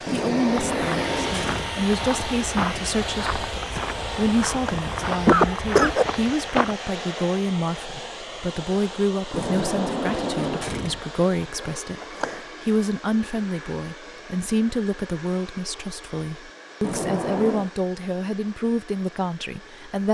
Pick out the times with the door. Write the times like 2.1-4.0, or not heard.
0.1-1.8, 9.3-11.1, 16.8-17.7.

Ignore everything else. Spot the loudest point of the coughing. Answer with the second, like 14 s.
5 s.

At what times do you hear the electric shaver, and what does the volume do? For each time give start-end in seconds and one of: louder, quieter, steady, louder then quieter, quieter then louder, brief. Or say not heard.
not heard.